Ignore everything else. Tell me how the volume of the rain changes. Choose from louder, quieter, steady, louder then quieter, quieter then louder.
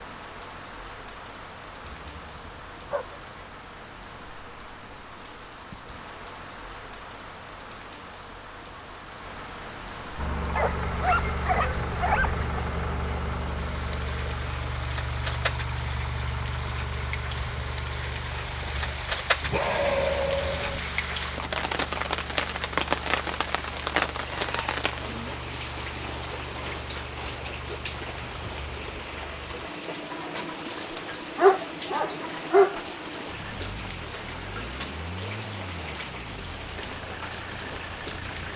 louder.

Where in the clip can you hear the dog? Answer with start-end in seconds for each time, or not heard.
1.8-3.4, 10.6-12.4, 19.4-20.8, 31.4-32.8.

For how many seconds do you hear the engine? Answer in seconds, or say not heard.
28 s.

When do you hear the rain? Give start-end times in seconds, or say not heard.
0.0-38.5.